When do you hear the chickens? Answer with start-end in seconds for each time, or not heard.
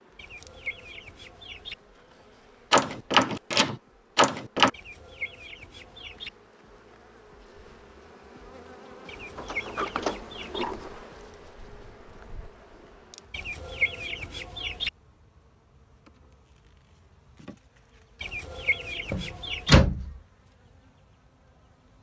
0.1-1.8, 4.7-6.3, 9.1-10.7, 13.3-14.9, 18.2-19.8.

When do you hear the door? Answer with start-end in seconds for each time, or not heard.
2.7-4.7, 9.3-10.9, 19.1-20.1.